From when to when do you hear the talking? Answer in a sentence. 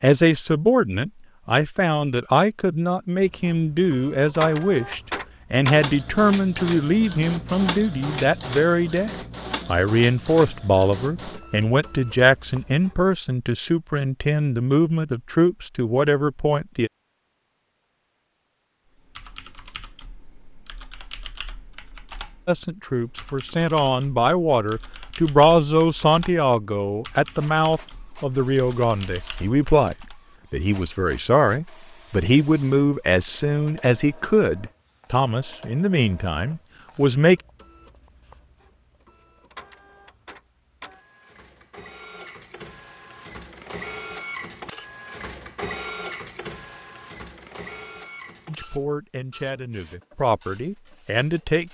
You can hear the talking from 0.0 to 16.9 s, from 22.4 to 37.4 s and from 48.5 to 51.6 s.